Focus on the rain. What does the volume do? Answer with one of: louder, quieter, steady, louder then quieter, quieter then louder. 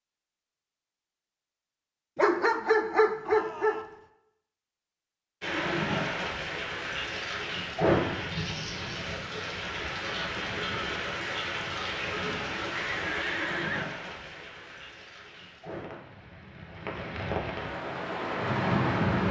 quieter then louder.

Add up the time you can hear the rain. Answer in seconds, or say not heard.
14 s.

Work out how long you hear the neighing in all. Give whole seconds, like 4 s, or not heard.
2 s.